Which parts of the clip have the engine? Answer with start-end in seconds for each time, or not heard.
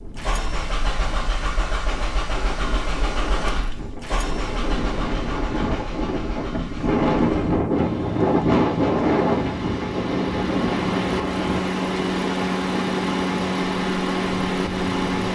0.0-15.2.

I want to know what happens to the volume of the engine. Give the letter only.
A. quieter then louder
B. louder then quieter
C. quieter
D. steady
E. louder
A.